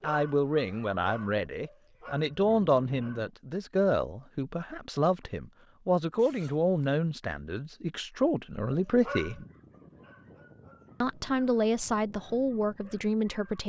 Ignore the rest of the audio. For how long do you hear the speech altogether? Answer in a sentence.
You can hear the speech for 12 seconds altogether.